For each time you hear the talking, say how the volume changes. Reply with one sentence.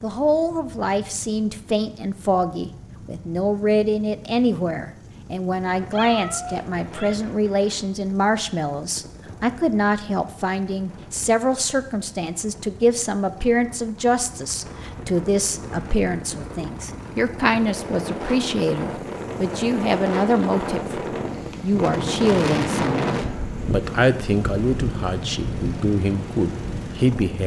The talking can be heard from 0.0 to 27.4 s, at a steady volume.